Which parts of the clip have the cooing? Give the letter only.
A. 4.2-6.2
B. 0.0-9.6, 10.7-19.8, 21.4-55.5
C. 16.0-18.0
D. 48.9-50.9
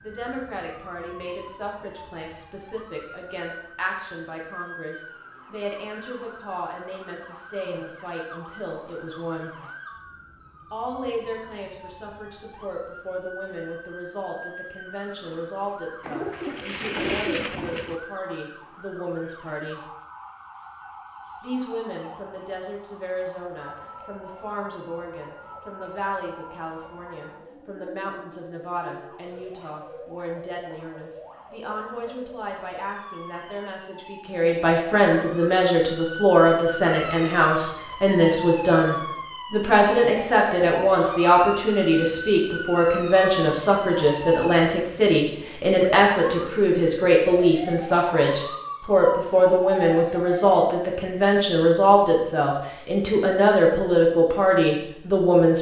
C.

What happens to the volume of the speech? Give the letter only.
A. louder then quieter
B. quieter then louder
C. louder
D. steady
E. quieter
C.